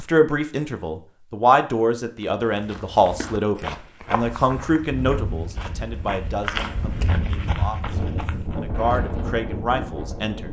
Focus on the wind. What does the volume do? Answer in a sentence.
The loudness of the wind goes up.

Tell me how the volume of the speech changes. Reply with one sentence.
The loudness of the speech goes down, then up.